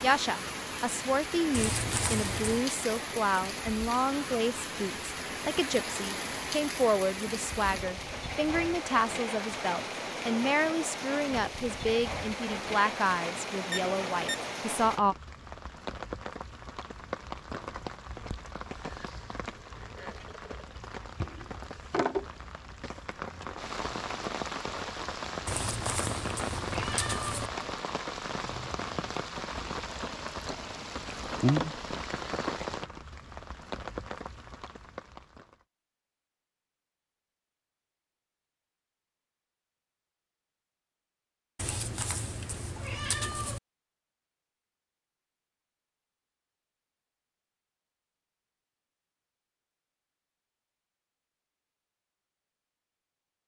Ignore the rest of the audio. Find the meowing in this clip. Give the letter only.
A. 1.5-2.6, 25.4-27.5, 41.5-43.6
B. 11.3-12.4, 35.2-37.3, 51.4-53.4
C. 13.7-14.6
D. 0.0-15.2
A.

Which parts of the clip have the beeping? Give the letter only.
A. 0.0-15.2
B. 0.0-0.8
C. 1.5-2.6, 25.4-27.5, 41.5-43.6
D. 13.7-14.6
D.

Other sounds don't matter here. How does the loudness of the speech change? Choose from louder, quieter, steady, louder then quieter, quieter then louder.
steady.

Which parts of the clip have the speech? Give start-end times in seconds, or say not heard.
0.0-15.2.